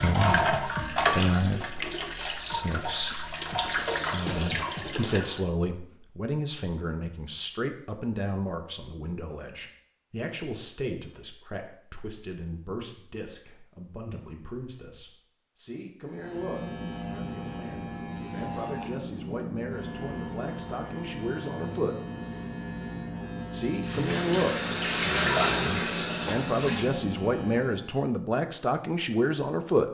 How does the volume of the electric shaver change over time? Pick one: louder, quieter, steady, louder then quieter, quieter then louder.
steady.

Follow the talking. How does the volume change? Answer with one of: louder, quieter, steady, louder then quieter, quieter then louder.
quieter then louder.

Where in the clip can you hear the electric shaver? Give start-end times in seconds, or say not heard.
16.0-28.0.